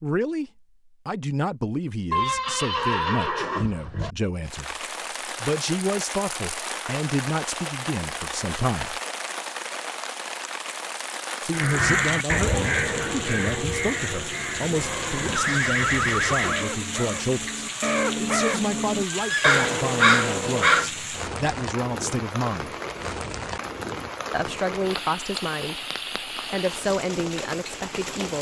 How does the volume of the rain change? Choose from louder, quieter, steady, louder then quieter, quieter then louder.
steady.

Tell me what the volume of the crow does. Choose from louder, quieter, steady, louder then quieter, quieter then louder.
quieter then louder.